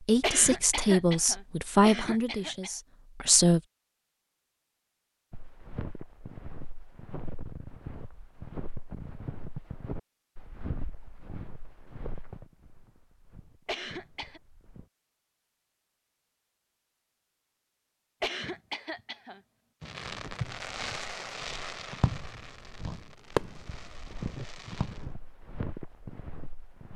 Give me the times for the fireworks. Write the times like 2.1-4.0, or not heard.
19.8-25.0.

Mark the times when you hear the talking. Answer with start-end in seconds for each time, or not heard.
0.0-3.6.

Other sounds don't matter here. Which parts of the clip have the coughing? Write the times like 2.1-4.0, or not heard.
0.2-2.7, 13.7-14.4, 18.2-19.4.